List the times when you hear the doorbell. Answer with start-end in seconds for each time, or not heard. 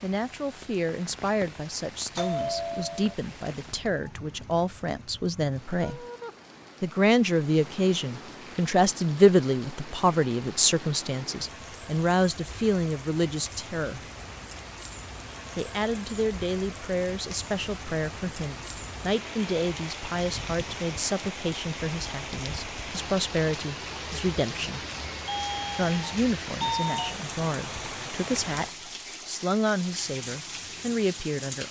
2.1-3.1, 25.1-27.2.